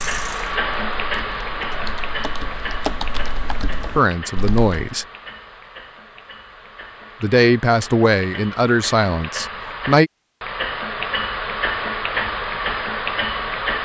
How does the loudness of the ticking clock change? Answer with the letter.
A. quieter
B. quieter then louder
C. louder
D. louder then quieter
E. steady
B.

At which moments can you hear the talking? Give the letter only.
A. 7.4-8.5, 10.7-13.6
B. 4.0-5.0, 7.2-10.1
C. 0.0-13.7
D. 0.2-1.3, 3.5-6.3
B.